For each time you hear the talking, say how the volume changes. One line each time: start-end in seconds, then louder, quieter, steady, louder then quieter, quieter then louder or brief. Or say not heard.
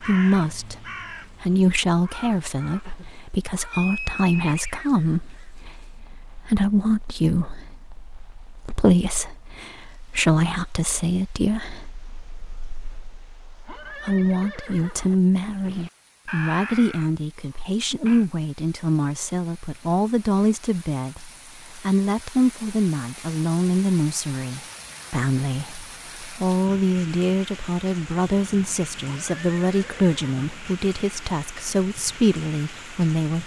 0.0-33.4 steady.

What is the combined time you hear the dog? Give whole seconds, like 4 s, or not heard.
not heard.